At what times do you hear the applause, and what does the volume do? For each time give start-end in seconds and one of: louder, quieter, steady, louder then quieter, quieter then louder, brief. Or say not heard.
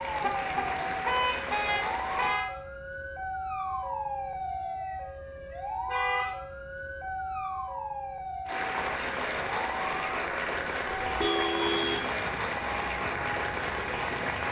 0.0-2.4 brief
8.4-14.4 steady.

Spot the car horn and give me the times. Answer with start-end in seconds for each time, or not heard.
0.2-2.5, 5.8-6.3, 11.0-12.1.